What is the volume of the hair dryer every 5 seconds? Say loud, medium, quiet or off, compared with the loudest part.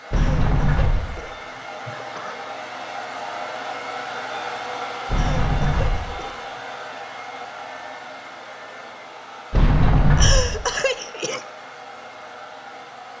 loud, loud, medium.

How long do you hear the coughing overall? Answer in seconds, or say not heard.
5 s.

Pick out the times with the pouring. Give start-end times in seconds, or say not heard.
not heard.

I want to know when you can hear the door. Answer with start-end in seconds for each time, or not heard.
0.1-1.1, 5.0-6.2, 9.5-10.6.